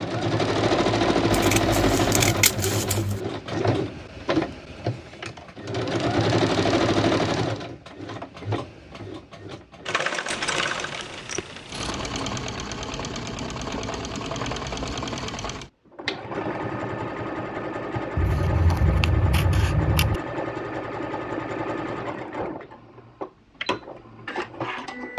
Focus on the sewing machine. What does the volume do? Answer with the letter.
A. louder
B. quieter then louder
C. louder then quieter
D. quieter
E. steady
D.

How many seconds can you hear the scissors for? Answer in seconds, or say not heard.
6 s.